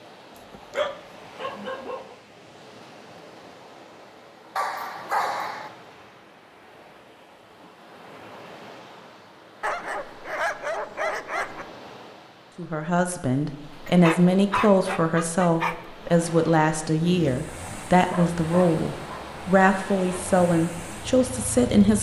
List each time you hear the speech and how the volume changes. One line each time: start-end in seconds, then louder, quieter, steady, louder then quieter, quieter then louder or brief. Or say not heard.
12.6-21.9 steady.